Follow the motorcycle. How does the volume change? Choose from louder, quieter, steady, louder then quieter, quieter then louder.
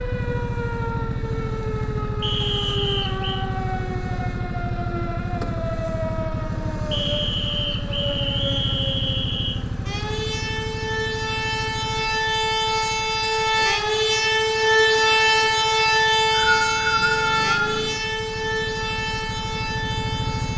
quieter then louder.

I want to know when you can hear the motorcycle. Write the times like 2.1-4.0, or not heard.
0.0-20.5.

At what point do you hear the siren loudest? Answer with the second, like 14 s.
15 s.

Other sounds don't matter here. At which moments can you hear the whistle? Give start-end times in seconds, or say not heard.
2.2-3.5, 6.9-9.6, 15.9-17.7.